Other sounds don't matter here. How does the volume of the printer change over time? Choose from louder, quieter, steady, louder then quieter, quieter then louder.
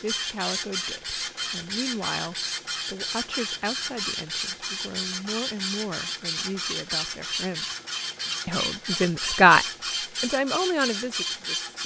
steady.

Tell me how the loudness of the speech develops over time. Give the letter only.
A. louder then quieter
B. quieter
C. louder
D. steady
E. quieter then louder
C.